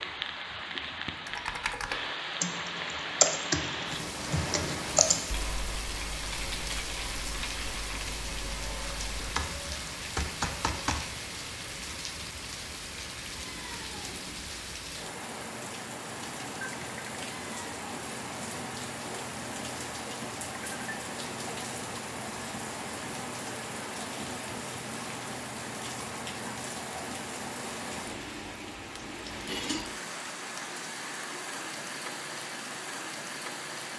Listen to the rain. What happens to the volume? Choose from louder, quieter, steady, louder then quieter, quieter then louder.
steady.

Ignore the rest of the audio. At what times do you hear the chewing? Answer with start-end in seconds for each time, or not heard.
not heard.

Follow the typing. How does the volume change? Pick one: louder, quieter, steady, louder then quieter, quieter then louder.
quieter then louder.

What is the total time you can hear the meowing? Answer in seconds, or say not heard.
2 s.